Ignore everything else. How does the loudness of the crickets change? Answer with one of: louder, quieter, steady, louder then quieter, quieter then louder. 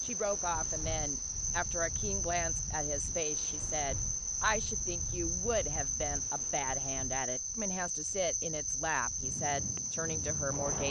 steady.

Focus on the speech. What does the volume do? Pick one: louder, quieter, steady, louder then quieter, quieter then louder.
steady.